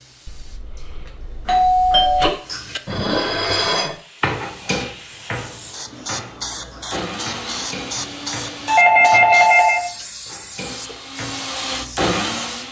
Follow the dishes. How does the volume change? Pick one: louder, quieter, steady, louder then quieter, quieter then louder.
quieter.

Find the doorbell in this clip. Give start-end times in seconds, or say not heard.
0.2-2.3, 8.7-9.8.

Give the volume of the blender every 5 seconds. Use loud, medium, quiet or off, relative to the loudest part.
off, medium, loud.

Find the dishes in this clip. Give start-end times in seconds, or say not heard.
2.5-11.9.